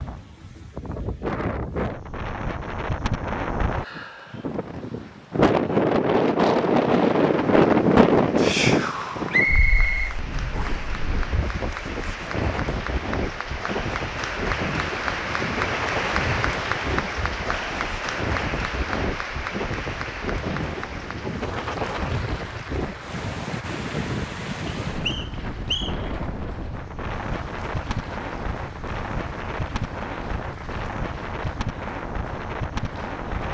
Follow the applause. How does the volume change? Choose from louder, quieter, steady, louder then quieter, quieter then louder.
louder then quieter.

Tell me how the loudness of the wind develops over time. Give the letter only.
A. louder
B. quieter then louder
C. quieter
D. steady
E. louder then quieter
C.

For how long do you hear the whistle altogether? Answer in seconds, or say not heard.
3 s.